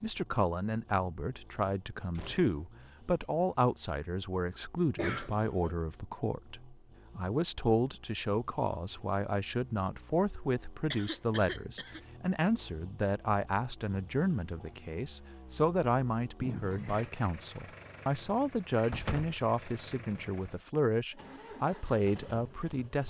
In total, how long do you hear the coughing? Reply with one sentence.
The coughing can be heard for 3 seconds in total.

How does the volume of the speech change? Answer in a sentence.
The loudness of the speech stays about the same.